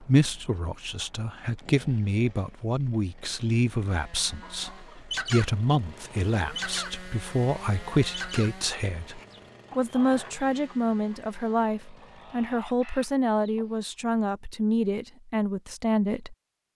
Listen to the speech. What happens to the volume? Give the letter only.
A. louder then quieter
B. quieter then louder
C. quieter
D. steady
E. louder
D.